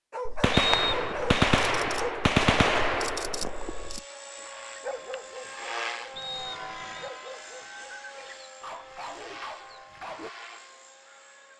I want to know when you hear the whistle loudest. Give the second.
1 s.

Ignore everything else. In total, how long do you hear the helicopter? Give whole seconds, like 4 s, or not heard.
8 s.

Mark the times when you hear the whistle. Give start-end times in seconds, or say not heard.
0.5-1.4, 6.2-7.1.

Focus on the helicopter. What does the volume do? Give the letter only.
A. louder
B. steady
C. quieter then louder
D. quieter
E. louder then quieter
E.